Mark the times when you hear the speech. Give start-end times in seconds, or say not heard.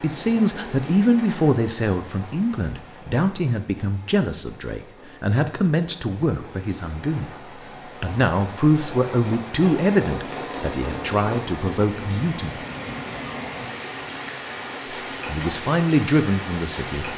0.0-7.3, 8.0-12.6, 15.2-17.1.